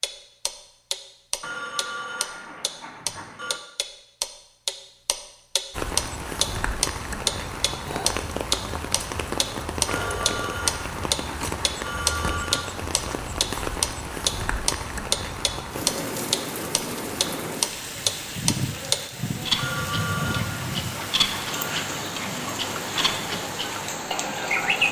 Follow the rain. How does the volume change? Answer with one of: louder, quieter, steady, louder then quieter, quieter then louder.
steady.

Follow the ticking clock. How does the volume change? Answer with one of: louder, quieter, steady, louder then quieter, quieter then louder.
louder then quieter.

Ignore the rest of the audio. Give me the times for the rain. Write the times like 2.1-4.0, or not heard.
5.7-24.8.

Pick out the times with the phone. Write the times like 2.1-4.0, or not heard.
1.4-3.6, 9.8-12.7, 19.6-21.6.